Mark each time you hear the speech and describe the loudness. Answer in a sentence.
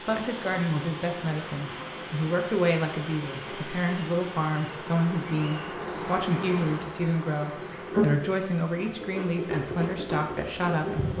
You can hear the speech from 0.0 to 11.1 s, at a steady volume.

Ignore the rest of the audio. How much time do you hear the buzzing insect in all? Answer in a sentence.
You can hear the buzzing insect for 11 seconds altogether.